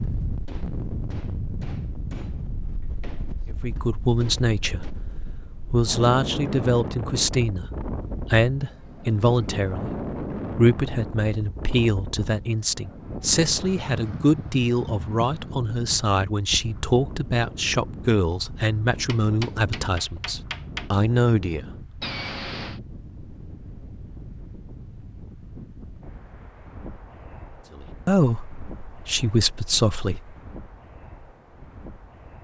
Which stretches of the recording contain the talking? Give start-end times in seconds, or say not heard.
3.5-4.9, 5.7-21.6, 27.7-30.4.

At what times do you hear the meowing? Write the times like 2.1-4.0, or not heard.
22.0-22.8.